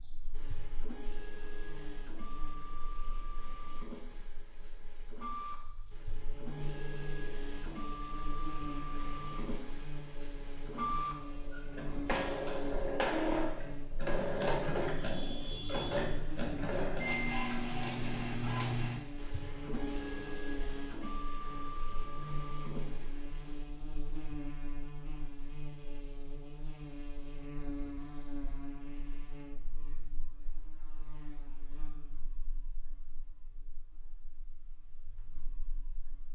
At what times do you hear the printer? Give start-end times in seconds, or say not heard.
0.0-23.7.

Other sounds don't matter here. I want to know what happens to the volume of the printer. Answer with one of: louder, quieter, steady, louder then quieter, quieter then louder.
louder then quieter.